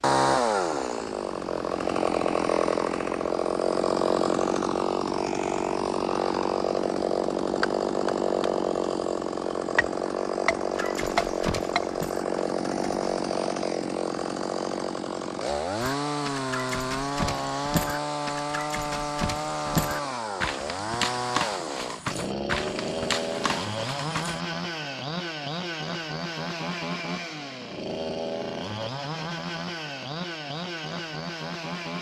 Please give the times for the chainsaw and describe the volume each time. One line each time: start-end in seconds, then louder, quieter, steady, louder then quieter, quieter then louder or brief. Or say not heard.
0.0-31.9 quieter.